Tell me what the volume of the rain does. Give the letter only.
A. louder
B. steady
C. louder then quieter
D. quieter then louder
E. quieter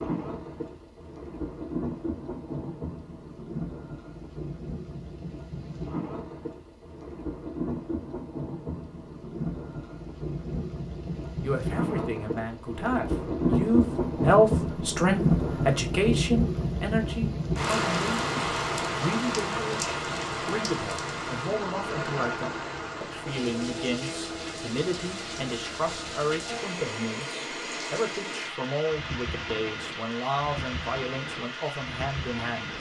C.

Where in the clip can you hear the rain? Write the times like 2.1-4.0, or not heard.
0.0-32.7.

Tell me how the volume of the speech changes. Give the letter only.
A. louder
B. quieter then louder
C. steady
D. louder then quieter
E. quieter
E.